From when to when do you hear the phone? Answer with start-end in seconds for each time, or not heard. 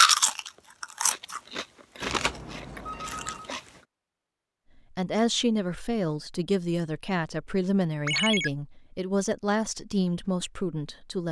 2.0-3.5, 8.1-8.5.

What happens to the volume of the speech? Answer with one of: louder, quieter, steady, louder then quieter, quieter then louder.
steady.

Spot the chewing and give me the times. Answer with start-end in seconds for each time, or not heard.
0.0-3.6.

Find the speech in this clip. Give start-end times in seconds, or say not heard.
4.9-11.2.